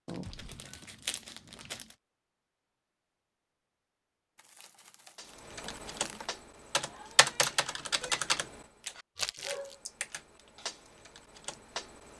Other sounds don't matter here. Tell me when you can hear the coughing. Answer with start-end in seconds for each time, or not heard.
0.2-1.1.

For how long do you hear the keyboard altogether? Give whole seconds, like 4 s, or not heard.
7 s.